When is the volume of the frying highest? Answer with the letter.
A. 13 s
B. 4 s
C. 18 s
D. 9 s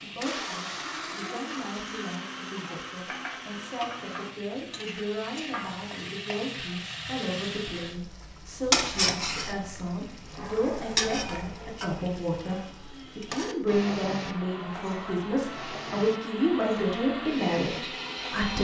D.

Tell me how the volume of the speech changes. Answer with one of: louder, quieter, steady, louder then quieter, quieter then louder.
louder.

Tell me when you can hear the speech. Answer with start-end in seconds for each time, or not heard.
0.0-18.6.